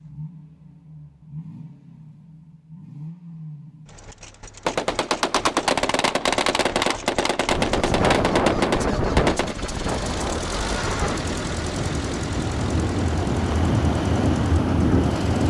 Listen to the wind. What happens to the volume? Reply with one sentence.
The loudness of the wind goes down, then up.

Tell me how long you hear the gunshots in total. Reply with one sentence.
The gunshots can be heard for 5 seconds in total.